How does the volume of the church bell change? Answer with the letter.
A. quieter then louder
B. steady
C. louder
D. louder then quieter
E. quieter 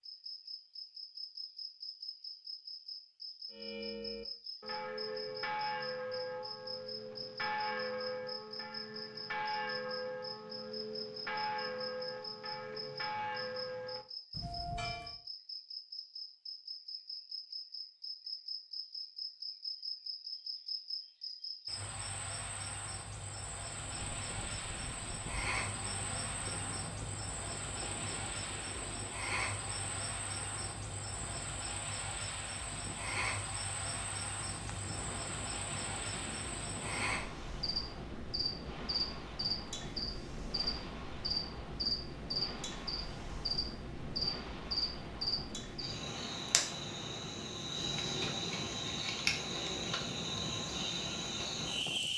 B.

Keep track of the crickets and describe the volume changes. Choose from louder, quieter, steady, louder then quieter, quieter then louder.
louder.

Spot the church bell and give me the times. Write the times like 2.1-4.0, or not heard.
3.5-15.2.